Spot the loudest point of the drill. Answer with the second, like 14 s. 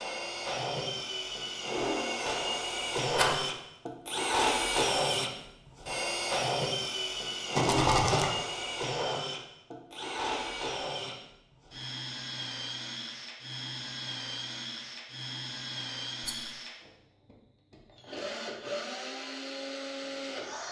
5 s.